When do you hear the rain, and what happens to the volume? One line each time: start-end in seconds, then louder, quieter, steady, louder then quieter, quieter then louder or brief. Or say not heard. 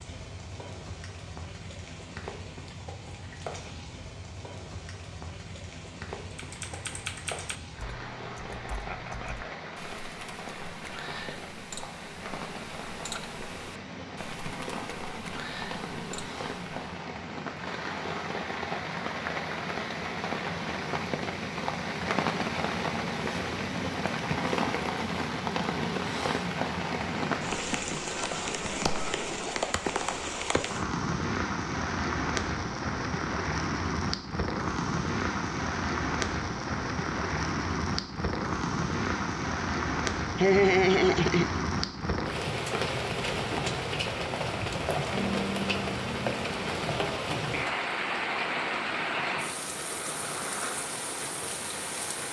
0.0-52.2 louder.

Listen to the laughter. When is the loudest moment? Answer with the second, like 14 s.
41 s.